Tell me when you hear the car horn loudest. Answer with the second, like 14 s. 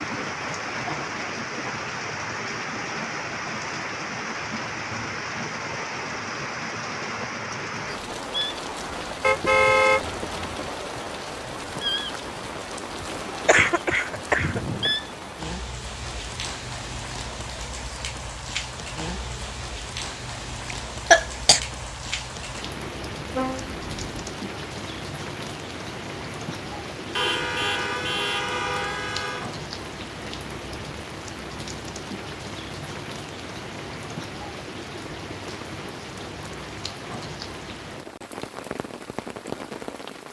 10 s.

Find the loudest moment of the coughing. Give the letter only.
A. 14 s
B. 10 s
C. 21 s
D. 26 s
C.